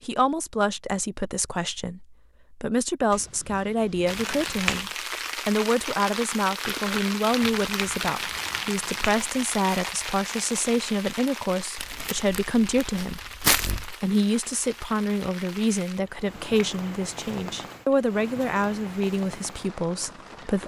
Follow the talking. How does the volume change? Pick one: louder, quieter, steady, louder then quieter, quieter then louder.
steady.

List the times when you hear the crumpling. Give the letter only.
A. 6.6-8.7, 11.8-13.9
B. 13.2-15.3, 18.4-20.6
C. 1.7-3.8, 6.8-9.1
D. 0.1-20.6
A.